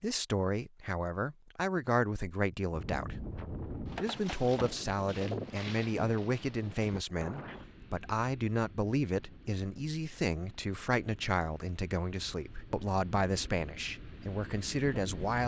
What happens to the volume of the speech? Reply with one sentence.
The loudness of the speech stays about the same.